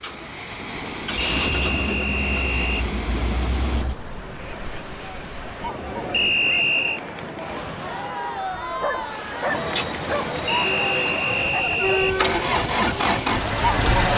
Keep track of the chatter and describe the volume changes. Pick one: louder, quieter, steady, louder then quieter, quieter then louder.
louder.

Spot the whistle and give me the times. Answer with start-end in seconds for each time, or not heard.
1.1-2.9, 6.1-7.0, 10.4-12.2.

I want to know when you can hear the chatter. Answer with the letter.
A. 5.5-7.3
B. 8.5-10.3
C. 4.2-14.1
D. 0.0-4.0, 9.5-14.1
C.